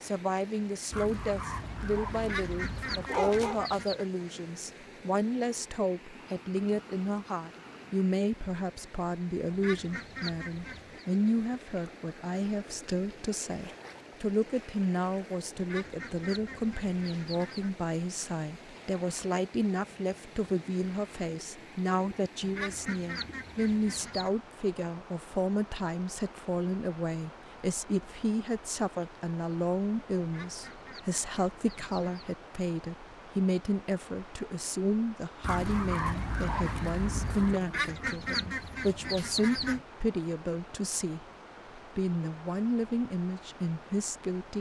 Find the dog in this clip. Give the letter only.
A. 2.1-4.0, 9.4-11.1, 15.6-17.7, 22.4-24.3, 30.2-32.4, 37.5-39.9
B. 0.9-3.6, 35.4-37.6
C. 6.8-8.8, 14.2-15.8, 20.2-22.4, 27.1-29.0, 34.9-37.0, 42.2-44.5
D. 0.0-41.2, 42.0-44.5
B.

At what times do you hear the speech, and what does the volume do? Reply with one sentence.
You can hear the speech from 0.0 to 41.2 s, at a steady volume; and briefly from 42.0 to 44.5 s.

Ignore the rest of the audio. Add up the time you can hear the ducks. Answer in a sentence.
The ducks can be heard for 12 seconds in total.